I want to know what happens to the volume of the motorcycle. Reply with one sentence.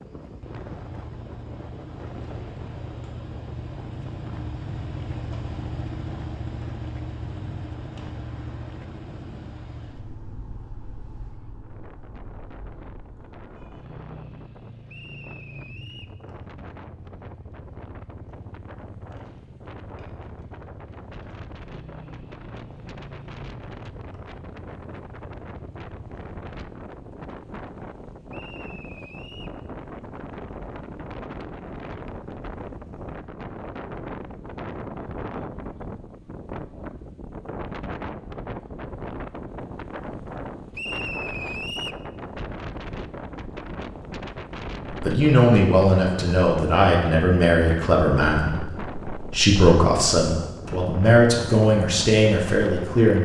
The volume of the motorcycle goes down.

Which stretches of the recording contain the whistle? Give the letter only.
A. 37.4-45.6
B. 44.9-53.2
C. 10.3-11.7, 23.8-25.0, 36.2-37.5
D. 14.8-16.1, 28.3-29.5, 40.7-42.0
D.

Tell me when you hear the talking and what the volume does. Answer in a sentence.
The talking can be heard from 44.9 to 53.2 s, at a steady volume.